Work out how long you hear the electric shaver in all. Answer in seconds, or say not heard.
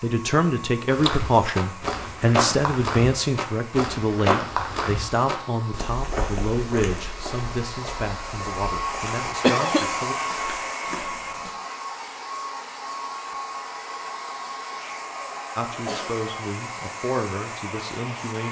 not heard.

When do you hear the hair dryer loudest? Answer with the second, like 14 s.
10 s.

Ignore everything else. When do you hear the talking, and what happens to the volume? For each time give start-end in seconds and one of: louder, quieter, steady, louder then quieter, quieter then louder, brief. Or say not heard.
0.0-10.2 quieter
15.6-18.4 brief.